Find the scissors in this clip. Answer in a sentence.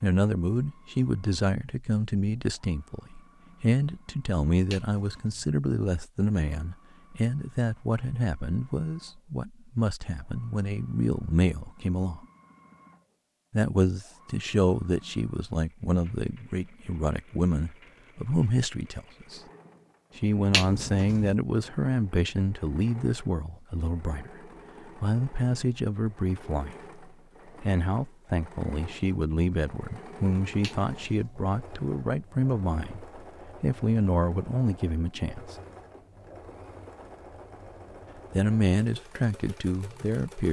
You can't hear the scissors here.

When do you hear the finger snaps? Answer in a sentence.
You can hear the finger snaps from 4.7 to 5.5 s, from 20.5 to 21.4 s and from 30.6 to 31.4 s.